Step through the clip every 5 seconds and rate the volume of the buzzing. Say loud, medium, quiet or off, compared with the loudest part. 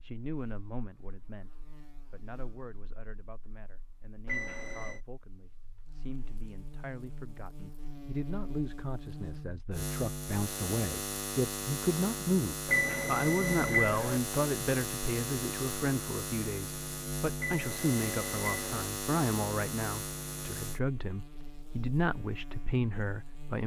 quiet, medium, loud, loud, medium.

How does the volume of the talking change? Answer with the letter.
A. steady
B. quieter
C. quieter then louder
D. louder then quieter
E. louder
E.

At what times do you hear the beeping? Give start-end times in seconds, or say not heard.
4.2-5.0, 12.7-14.2, 17.4-18.9.